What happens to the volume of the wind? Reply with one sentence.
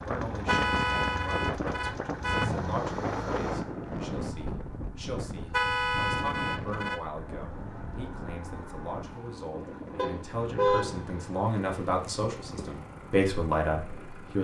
The volume of the wind goes down.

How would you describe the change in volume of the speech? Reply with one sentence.
The volume of the speech goes up.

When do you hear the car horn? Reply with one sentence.
You can hear the car horn from 0.5 to 2.5 s, from 5.5 to 7.0 s and from 9.9 to 10.9 s.